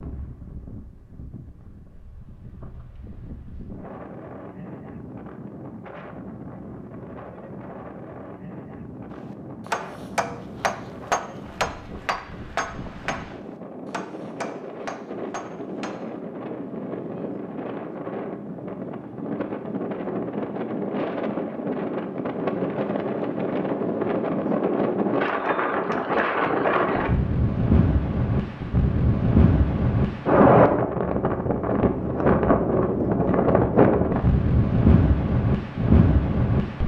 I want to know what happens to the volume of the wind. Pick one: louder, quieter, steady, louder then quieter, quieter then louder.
louder.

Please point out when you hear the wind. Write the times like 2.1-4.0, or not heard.
0.0-36.8.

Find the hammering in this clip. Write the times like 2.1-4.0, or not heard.
9.1-16.0.